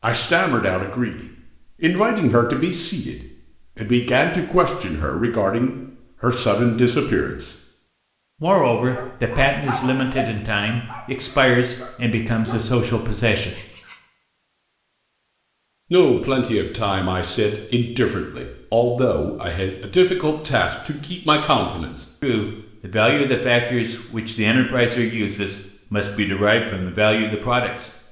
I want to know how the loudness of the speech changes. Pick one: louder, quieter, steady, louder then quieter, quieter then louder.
steady.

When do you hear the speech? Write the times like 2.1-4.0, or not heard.
0.0-7.5, 8.4-13.6, 15.9-27.9.